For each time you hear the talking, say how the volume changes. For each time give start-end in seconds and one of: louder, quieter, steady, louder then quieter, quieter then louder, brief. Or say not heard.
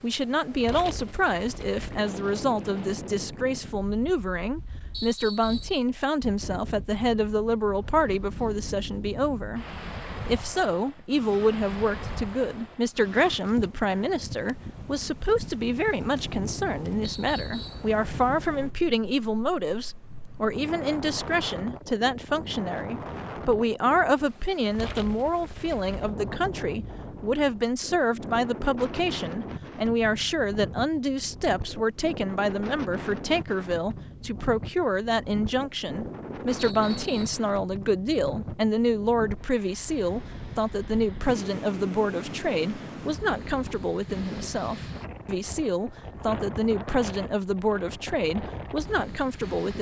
0.0-49.7 steady.